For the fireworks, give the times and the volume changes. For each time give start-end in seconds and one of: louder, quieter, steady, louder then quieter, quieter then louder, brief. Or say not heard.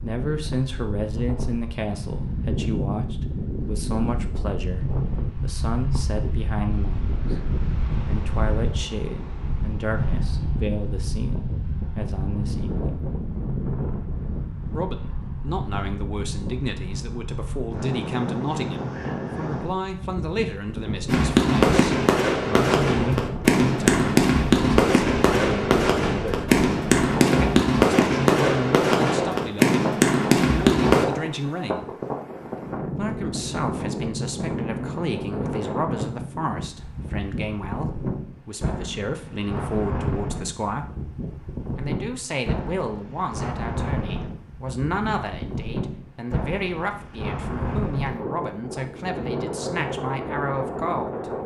21.1-31.1 steady.